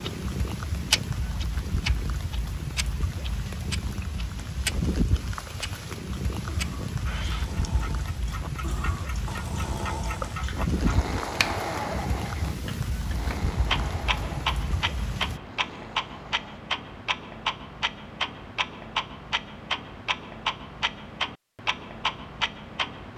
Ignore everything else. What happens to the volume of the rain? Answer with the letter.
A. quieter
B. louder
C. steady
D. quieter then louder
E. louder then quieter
C.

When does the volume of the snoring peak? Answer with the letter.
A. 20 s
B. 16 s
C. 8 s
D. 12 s
D.